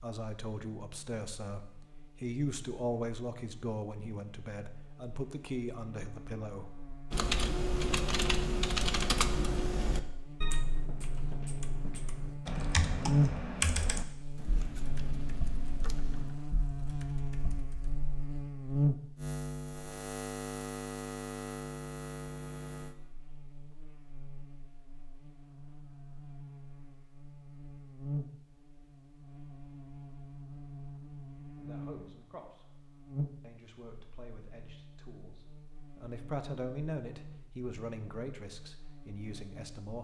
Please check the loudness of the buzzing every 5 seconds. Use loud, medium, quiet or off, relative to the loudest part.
quiet, quiet, loud, loud, medium, medium, medium, quiet.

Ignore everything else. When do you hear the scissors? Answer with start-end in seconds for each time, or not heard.
14.3-16.4.